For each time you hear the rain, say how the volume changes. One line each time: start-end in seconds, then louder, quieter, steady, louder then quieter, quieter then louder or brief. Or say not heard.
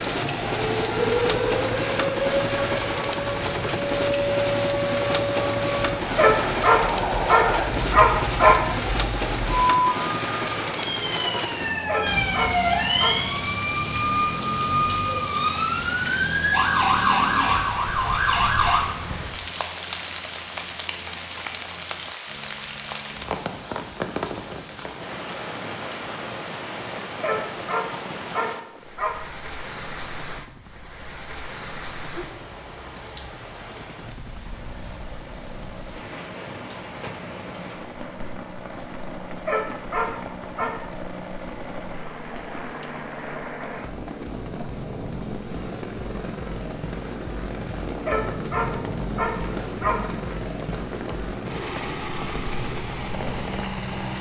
0.0-54.1 quieter.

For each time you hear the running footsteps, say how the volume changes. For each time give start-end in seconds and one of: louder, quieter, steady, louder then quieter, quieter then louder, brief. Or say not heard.
not heard.